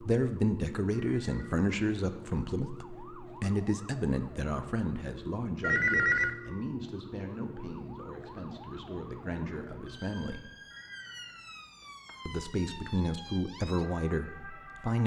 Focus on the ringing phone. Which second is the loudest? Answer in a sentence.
The volume of the ringing phone peaks at 6 seconds.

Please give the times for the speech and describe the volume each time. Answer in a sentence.
The speech can be heard from 0.0 to 10.4 s, getting quieter; and briefly from 12.2 to 15.0 s.